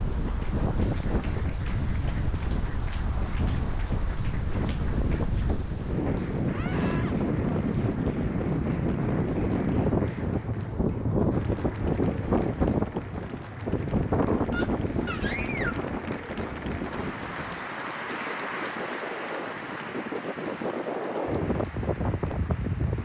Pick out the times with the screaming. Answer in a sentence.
You can hear the screaming from 6.5 to 7.2 s and from 14.5 to 15.8 s.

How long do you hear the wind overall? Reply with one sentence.
The wind can be heard for 23 seconds in total.